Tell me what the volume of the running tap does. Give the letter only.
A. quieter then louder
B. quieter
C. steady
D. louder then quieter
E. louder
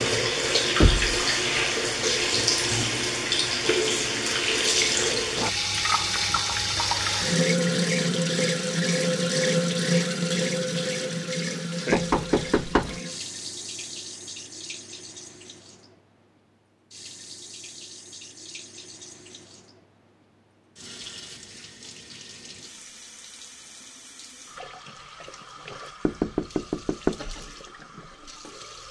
B.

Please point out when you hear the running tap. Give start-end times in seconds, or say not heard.
0.0-28.8.